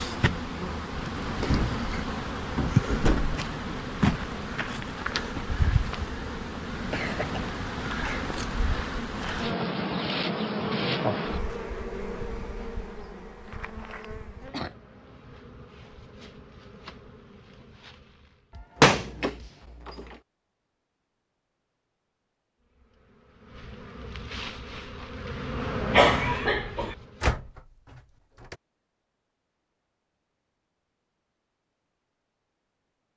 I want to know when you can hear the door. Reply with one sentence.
The door can be heard from 0.9 to 3.4 s, from 18.6 to 20.1 s and from 27.2 to 28.6 s.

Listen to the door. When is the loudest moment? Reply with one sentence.
The loudest moment of the door is at 19 seconds.